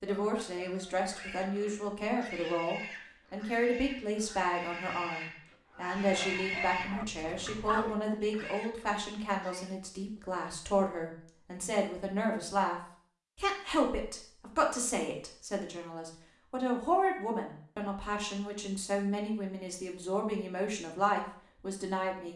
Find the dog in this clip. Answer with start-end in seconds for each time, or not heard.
5.8-8.6.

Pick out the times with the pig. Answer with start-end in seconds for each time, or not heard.
0.6-9.7.